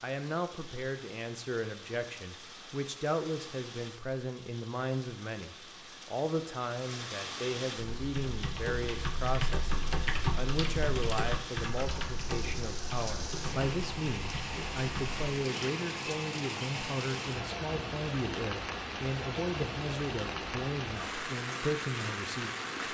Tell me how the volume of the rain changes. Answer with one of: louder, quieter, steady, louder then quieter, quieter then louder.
louder.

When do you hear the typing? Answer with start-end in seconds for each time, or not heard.
7.8-15.2.